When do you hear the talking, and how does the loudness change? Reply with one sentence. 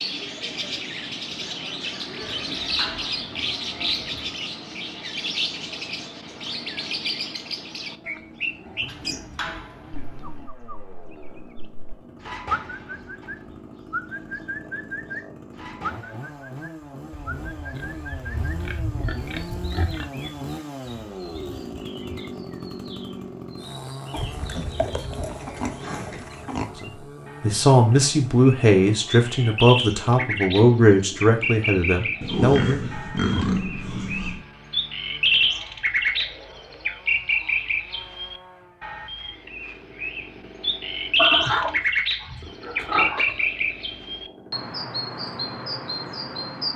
You can hear the talking from 26.8 to 32.9 s, getting quieter.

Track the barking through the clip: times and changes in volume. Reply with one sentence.
You can't hear the barking here.